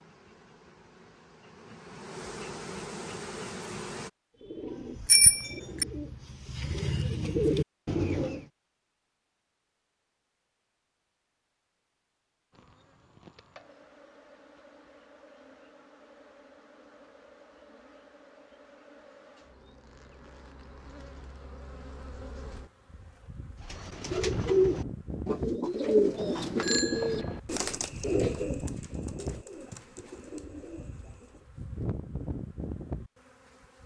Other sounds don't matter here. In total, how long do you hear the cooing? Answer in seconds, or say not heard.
12 s.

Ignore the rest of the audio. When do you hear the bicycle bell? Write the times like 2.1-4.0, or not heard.
5.0-5.8, 26.2-27.4.